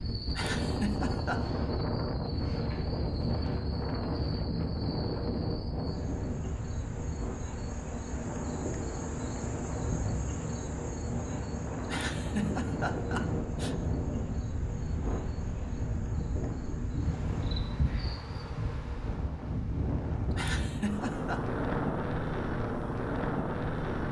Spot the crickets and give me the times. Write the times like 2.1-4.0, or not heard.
0.0-18.4.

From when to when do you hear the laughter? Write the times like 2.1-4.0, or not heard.
0.3-1.5, 11.9-13.8, 20.4-21.4.